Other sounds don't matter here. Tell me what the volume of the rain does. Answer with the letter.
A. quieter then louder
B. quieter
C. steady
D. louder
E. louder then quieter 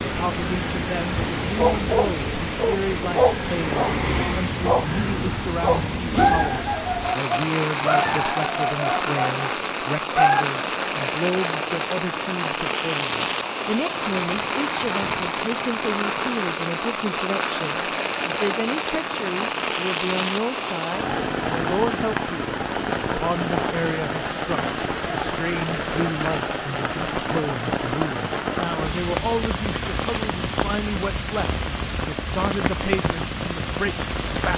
C.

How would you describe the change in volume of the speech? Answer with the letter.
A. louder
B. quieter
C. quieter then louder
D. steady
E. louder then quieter
D.